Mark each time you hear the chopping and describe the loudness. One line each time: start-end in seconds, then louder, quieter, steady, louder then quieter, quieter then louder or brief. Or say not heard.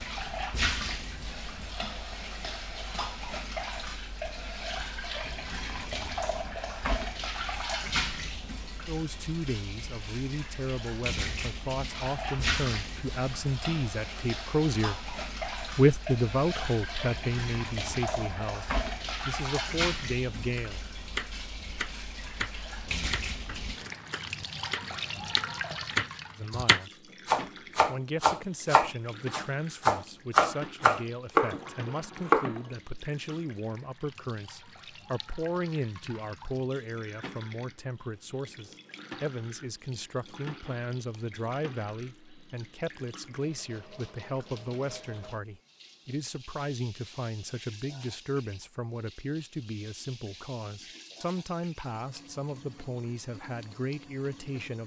20.6-32.6 louder.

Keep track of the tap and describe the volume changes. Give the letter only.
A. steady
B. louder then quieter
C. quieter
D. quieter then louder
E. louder
C.